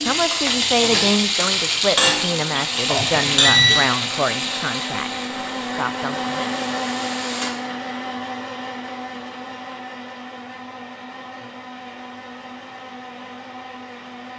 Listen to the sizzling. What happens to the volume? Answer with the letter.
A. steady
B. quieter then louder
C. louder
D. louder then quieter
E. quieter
E.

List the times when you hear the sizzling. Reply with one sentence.
You can hear the sizzling from 0.0 to 7.5 s.